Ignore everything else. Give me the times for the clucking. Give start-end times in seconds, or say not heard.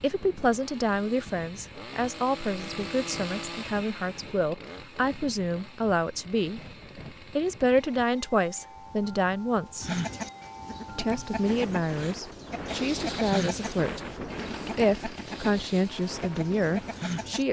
9.8-17.4.